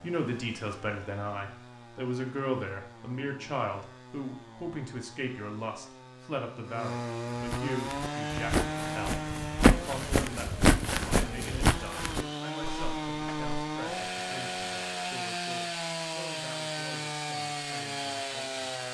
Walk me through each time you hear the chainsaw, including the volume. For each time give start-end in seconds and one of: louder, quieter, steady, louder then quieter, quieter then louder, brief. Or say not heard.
0.0-18.8 louder.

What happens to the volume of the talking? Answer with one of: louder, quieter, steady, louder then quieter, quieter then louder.
quieter.